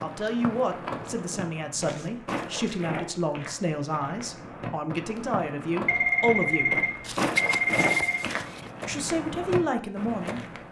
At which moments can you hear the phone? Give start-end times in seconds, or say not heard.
5.8-8.2.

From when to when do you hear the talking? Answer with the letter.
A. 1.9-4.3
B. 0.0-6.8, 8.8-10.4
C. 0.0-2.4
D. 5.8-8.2
B.